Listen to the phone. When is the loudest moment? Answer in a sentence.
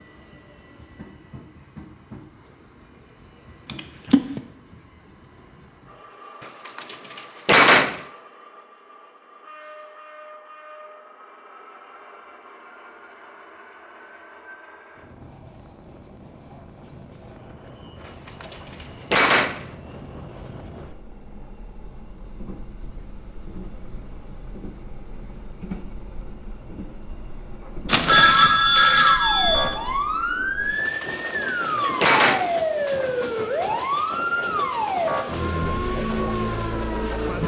The volume of the phone peaks at 28 seconds.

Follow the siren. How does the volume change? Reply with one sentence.
The loudness of the siren stays about the same.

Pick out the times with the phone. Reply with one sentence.
The phone can be heard from 3.6 to 4.4 s and from 27.9 to 29.8 s.